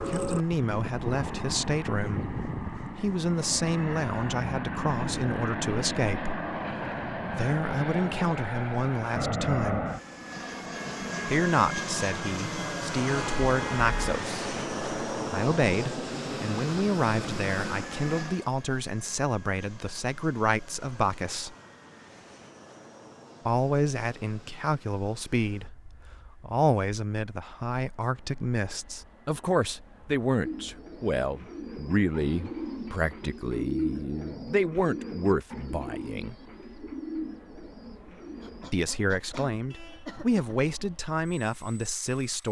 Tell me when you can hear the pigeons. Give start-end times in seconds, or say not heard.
30.4-38.7.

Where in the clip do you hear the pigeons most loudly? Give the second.
34 s.